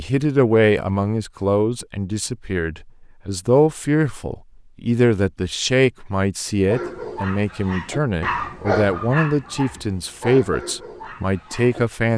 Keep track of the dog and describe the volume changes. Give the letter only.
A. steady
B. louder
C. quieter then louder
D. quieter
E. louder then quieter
E.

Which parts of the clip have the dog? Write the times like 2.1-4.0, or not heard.
6.7-12.1.